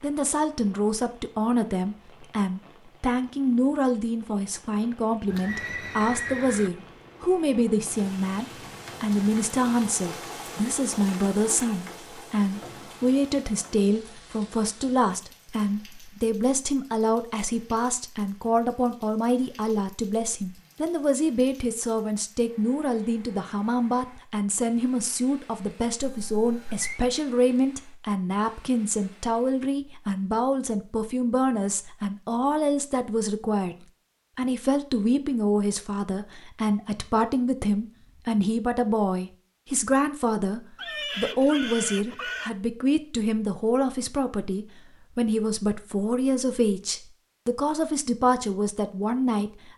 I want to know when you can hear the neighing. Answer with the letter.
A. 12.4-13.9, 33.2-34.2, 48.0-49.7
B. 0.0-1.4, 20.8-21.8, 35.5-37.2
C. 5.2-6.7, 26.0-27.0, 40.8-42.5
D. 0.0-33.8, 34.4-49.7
C.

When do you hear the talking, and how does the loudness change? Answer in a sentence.
The talking can be heard from 0.0 to 33.8 s, at a steady volume; and from 34.4 to 49.7 s, at a steady volume.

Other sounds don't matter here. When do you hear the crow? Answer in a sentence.
You can't hear the crow here.